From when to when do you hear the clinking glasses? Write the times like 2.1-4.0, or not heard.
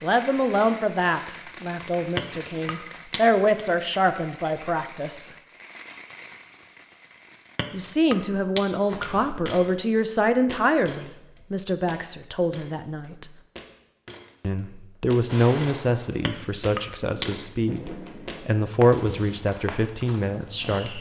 2.1-3.6, 7.5-9.5, 16.2-17.2.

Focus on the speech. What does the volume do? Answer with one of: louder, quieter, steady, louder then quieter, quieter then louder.
steady.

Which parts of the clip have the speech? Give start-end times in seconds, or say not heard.
0.0-5.3, 7.7-13.3, 14.4-20.9.